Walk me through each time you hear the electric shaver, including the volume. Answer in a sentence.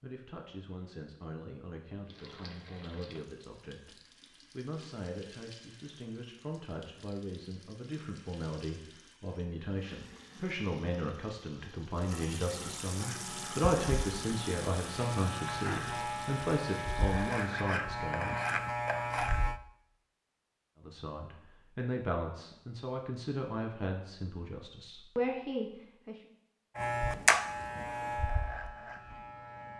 The electric shaver can be heard from 12.9 to 19.6 s, getting louder; and briefly from 26.8 to 29.7 s.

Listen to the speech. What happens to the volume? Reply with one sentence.
The loudness of the speech goes up.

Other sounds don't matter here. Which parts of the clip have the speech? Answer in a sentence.
The speech can be heard from 0.0 to 18.6 s and from 20.8 to 26.2 s.